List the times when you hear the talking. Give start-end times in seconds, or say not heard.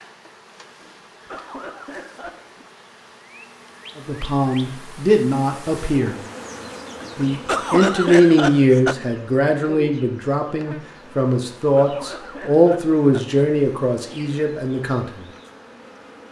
4.0-6.2, 7.2-15.1.